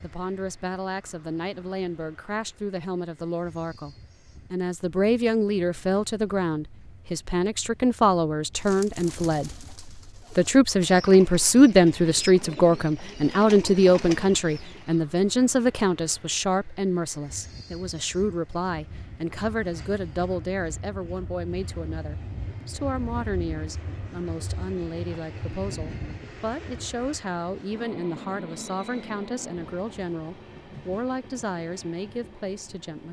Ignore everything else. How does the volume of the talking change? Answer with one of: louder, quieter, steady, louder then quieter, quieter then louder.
louder then quieter.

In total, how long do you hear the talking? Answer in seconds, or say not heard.
32 s.